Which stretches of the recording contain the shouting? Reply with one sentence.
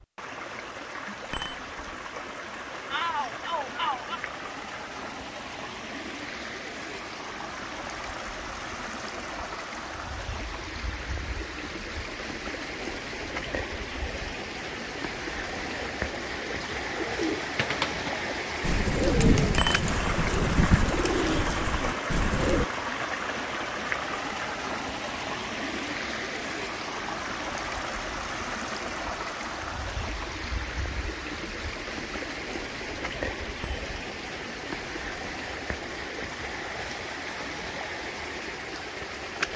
The shouting can be heard from 2.9 to 4.2 s.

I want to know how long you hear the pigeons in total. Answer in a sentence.
You can hear the pigeons for 7 seconds altogether.